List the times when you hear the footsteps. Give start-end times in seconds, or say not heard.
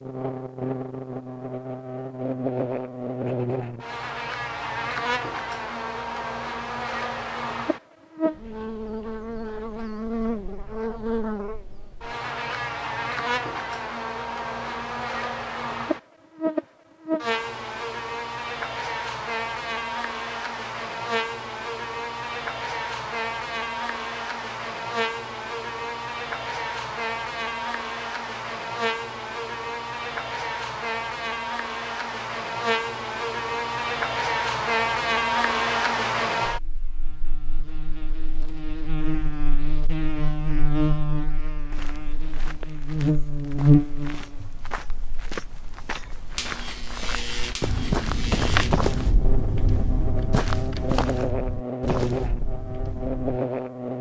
41.7-53.4.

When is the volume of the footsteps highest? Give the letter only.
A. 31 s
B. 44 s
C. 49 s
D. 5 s
C.